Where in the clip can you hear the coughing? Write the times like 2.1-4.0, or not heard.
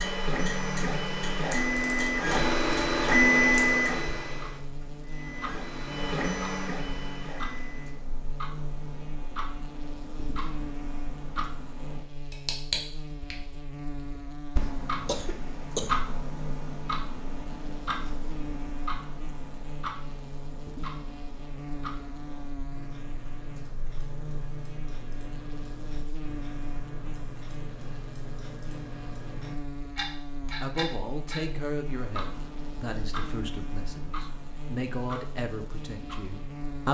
15.1-16.1.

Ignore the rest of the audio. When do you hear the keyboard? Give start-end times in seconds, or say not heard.
not heard.